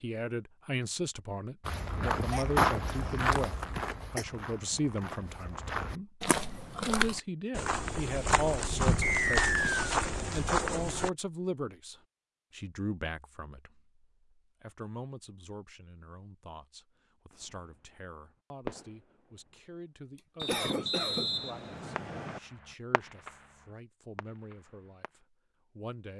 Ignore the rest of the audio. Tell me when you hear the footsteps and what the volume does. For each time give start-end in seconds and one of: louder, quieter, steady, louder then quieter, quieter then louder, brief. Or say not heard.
1.6-11.1 quieter then louder.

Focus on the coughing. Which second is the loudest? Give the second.
21 s.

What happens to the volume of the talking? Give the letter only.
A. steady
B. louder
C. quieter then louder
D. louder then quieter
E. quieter
E.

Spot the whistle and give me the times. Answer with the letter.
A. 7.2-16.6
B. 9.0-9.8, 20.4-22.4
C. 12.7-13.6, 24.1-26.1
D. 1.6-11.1
B.